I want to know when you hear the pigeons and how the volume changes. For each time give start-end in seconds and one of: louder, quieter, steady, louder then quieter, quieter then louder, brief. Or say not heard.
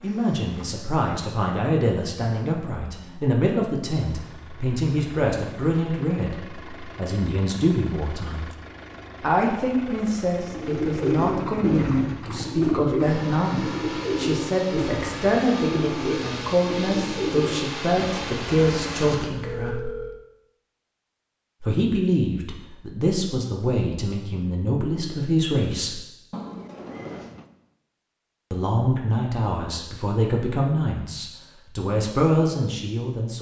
10.4-19.8 quieter.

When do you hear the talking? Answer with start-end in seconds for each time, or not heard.
0.0-8.4, 9.2-19.9, 21.6-26.0, 28.5-33.3.